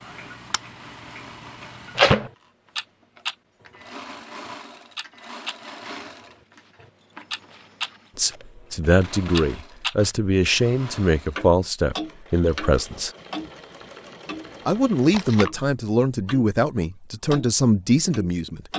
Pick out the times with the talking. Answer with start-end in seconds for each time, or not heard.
8.2-13.1, 14.7-18.6.